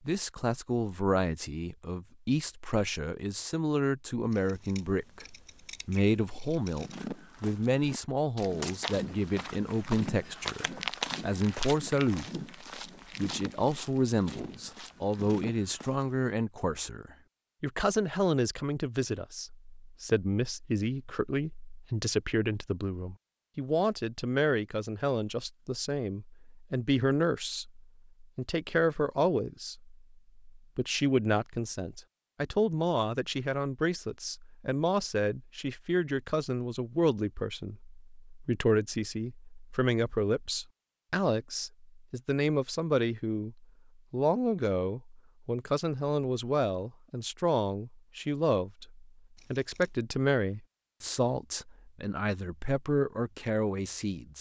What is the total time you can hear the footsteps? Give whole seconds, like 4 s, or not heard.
10 s.